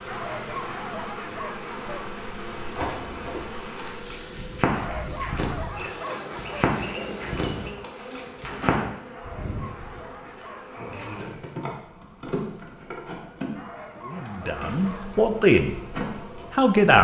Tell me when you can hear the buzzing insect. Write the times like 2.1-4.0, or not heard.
0.0-16.9.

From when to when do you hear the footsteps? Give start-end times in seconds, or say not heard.
2.5-8.8.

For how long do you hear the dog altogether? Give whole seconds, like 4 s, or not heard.
8 s.